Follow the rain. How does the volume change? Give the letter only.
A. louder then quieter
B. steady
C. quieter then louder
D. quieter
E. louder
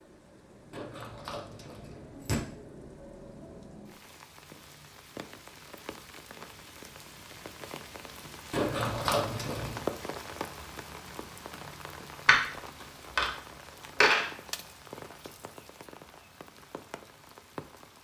A.